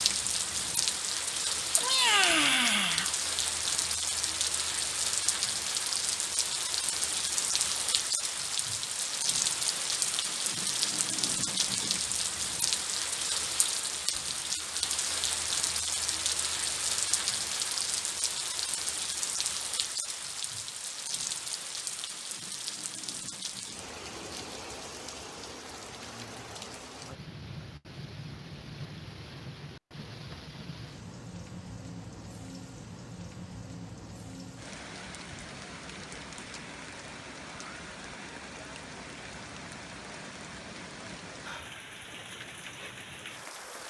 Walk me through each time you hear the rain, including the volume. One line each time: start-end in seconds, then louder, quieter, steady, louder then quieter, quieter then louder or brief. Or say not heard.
0.0-43.8 quieter.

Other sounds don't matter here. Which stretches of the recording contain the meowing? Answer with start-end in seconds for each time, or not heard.
1.8-3.1.